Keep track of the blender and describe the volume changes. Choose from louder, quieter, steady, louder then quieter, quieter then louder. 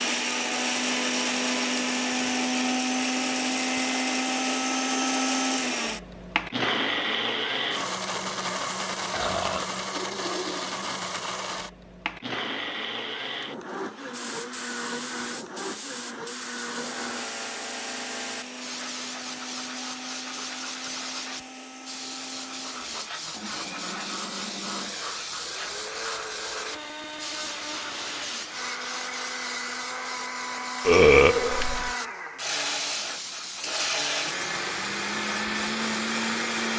quieter then louder.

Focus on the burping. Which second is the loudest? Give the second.
31 s.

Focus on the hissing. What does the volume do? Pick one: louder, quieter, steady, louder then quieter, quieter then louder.
steady.